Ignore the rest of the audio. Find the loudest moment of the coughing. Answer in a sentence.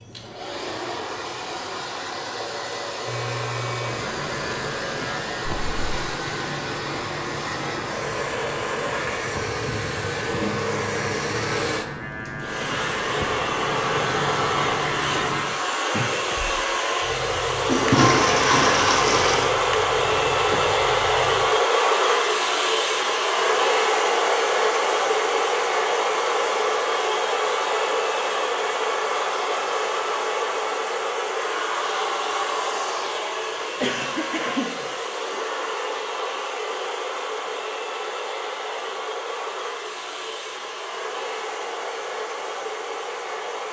The volume of the coughing peaks at 34 seconds.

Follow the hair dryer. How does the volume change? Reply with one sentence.
The loudness of the hair dryer goes up, then down.